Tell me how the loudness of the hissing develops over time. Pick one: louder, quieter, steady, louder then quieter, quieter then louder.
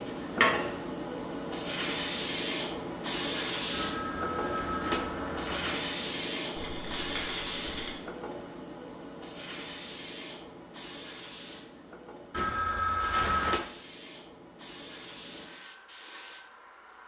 quieter.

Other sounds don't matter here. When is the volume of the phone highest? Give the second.
13 s.